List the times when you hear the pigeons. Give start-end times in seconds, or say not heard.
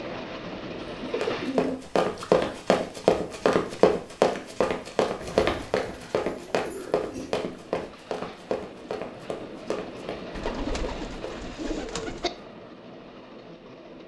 1.0-2.5, 5.2-7.5, 10.3-12.3.